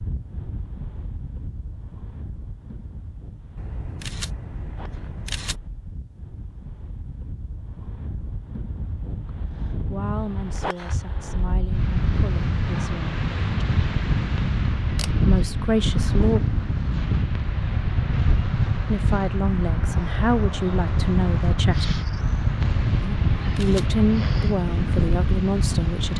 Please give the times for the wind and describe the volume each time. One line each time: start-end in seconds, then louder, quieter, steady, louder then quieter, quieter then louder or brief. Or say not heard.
0.0-26.1 louder.